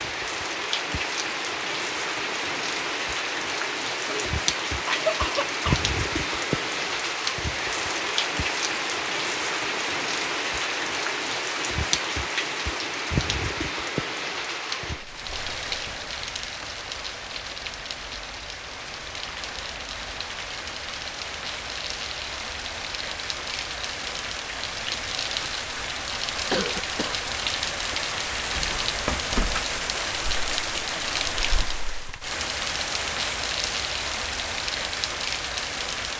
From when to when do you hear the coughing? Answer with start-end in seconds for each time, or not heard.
4.0-5.8, 26.5-27.2.